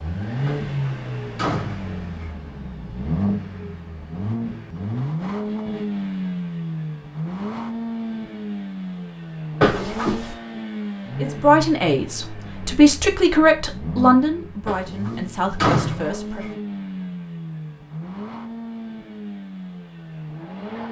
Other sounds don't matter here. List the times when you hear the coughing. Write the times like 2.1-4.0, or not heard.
not heard.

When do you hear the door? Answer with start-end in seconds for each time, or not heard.
0.5-2.2, 9.6-10.3, 14.7-16.5.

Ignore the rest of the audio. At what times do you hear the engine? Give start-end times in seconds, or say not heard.
0.0-20.8.